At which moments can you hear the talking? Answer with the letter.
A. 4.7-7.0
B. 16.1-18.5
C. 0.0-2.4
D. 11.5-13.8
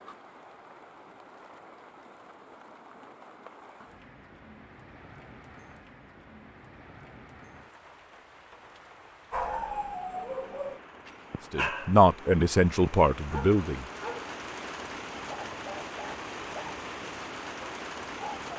D.